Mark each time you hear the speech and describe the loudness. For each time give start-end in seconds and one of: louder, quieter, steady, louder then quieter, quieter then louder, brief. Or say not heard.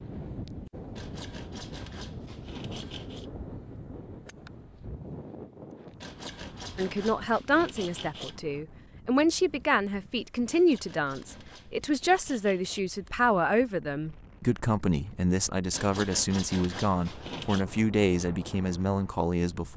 6.8-19.7 steady.